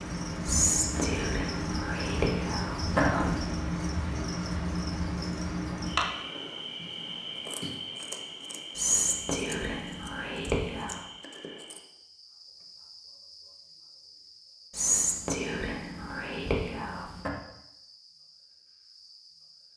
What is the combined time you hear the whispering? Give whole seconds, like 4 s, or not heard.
8 s.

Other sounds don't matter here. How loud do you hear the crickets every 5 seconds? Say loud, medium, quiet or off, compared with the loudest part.
loud, loud, quiet, quiet.